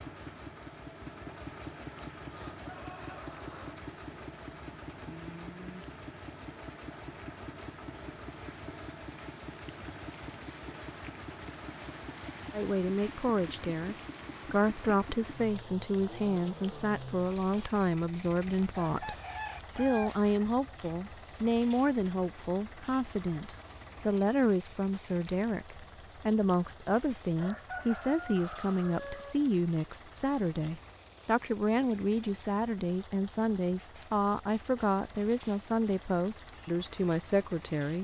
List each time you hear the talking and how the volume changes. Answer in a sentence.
The talking can be heard from 12.5 to 37.9 s, at a steady volume.